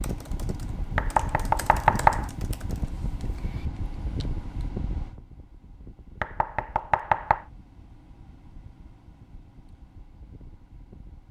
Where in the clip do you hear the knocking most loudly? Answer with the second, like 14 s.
2 s.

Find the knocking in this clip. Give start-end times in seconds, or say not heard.
0.9-2.2, 6.2-7.5.